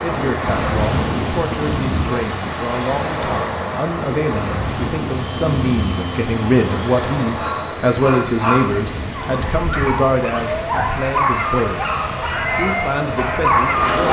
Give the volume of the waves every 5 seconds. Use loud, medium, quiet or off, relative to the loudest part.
loud, medium, medium.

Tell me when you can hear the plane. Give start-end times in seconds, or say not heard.
5.2-14.0.